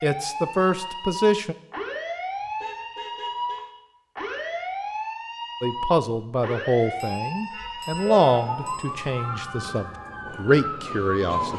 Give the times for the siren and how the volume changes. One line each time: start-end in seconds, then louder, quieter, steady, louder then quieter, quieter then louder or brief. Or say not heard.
0.0-11.5 steady.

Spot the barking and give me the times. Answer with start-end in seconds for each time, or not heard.
not heard.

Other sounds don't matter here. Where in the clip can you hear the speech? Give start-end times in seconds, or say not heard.
0.0-1.6, 5.6-11.5.